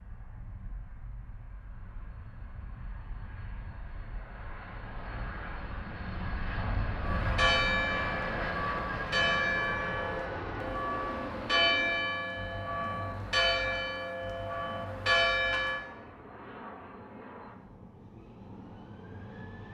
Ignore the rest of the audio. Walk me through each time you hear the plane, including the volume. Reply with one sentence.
The plane can be heard from 0.0 to 19.7 s, getting louder then quieter.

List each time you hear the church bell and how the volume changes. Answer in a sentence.
You can hear the church bell from 7.0 to 15.8 s, at a steady volume.